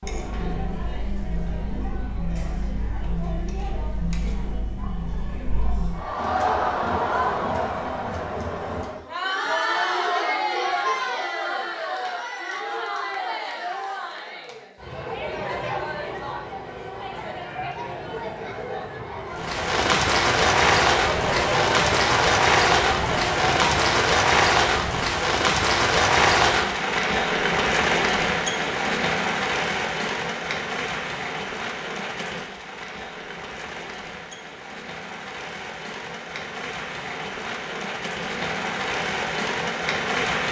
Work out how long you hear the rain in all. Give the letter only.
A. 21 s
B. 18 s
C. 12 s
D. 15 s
A.